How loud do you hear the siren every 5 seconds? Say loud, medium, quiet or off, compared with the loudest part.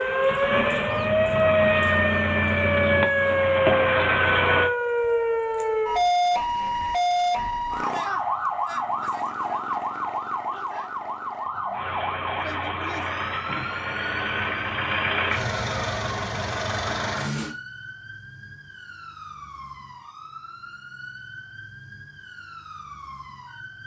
loud, loud, medium, quiet, quiet.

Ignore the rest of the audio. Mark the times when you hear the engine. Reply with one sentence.
You can hear the engine from 0.0 to 4.7 s and from 11.7 to 17.6 s.